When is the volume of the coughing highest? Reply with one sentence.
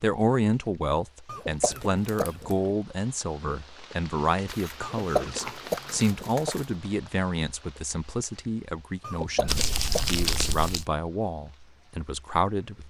The volume of the coughing peaks at 5 seconds.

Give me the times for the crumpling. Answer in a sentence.
The crumpling can be heard from 1.6 to 2.5 s, from 4.5 to 6.7 s and from 9.4 to 10.8 s.